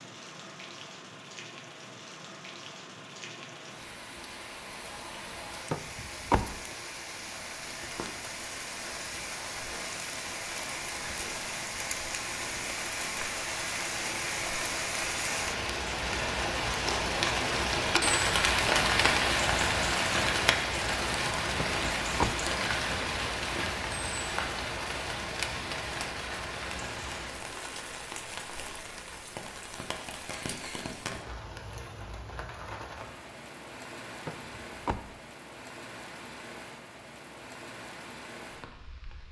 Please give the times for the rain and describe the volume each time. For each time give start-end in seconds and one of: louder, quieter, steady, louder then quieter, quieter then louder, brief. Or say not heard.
0.0-39.2 louder then quieter.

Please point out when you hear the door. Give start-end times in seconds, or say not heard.
5.7-6.5, 21.6-22.4, 34.2-35.1.